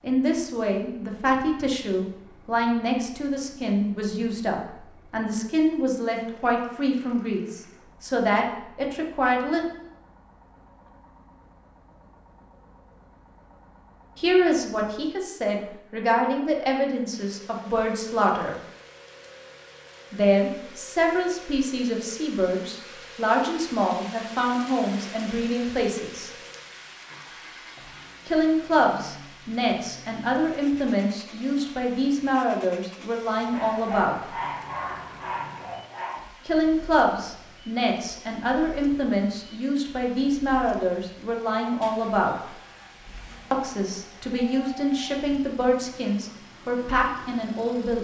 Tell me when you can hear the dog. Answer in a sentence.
You can hear the dog from 33.5 to 36.2 s.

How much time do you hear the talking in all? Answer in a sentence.
You can hear the talking for 37 seconds altogether.